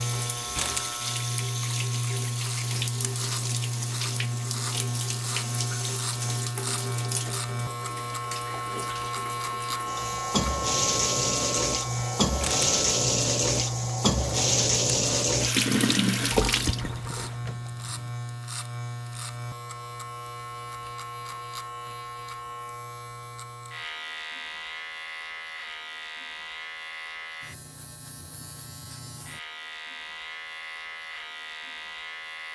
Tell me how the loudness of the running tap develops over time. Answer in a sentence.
The loudness of the running tap goes up.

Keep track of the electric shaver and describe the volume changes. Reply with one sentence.
The volume of the electric shaver goes down.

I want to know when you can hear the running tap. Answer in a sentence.
You can hear the running tap from 0.0 to 18.1 s.